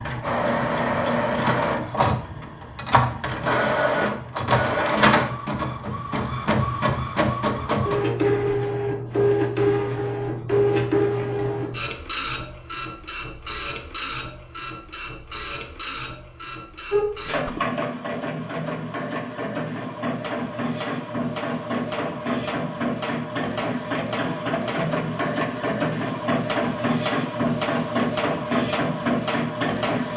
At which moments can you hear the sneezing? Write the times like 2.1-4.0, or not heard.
16.9-17.6.